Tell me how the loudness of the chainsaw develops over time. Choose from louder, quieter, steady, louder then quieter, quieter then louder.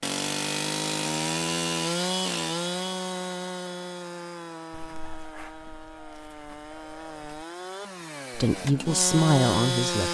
quieter then louder.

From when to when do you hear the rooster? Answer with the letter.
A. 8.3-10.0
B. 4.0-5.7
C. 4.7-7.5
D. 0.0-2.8
C.